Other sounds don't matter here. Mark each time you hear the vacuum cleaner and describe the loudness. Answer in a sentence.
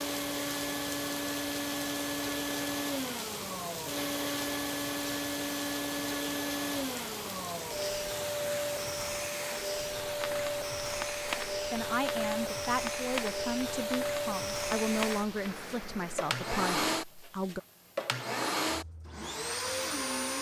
You can hear the vacuum cleaner from 0.0 to 20.3 s, at a steady volume.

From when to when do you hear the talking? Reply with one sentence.
You can hear the talking from 11.6 to 17.6 s.